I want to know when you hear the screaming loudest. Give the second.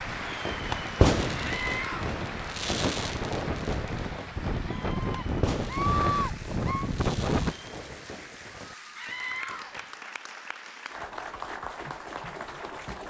6 s.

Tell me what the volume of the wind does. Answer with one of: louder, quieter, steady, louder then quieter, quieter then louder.
louder.